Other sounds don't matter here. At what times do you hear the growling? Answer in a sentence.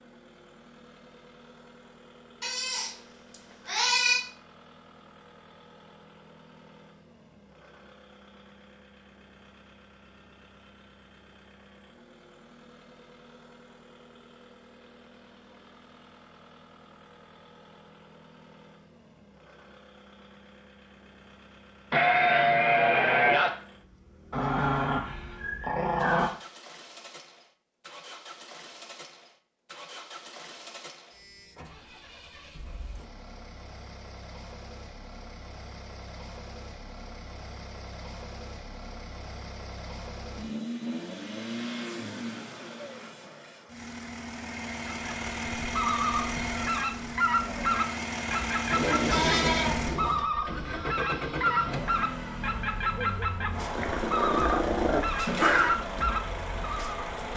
You can hear the growling from 24.3 to 26.3 s and from 53.8 to 55.8 s.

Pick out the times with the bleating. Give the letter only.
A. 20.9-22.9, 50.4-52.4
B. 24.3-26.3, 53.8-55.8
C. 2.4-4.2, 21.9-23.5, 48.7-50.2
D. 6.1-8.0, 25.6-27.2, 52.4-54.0
C.